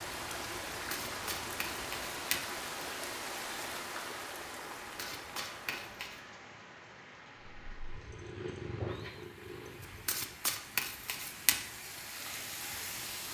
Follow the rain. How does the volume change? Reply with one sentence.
The volume of the rain goes down, then up.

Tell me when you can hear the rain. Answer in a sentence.
You can hear the rain from 0.0 to 13.2 s.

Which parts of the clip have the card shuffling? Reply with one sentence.
You can hear the card shuffling from 0.9 to 2.4 s, from 4.7 to 6.2 s and from 10.1 to 11.6 s.